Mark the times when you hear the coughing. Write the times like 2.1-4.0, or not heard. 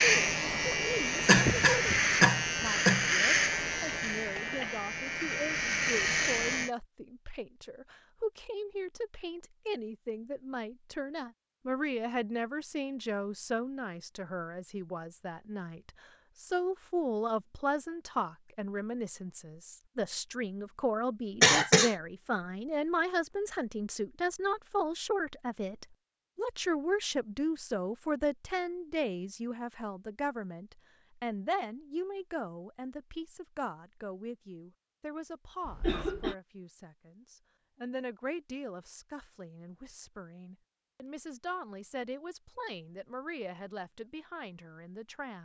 1.2-3.1, 21.4-21.9, 35.6-36.4.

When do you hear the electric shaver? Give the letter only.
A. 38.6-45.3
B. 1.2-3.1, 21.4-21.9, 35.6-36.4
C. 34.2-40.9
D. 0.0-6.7
D.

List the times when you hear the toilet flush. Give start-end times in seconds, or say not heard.
not heard.